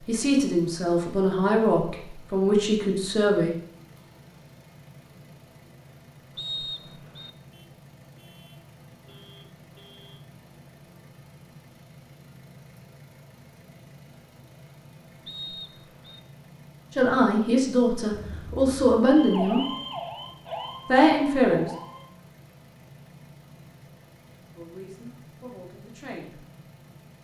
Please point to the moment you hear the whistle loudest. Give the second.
7 s.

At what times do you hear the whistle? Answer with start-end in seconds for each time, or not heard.
6.3-7.3, 15.2-16.2.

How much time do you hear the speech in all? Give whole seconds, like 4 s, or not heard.
9 s.